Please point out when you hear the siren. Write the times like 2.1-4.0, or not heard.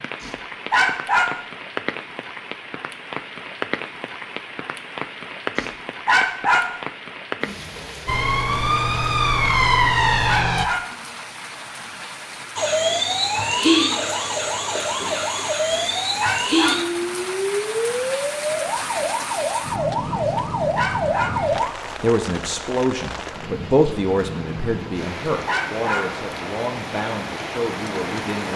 8.1-10.7, 12.6-21.8.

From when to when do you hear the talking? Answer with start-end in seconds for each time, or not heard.
21.9-28.5.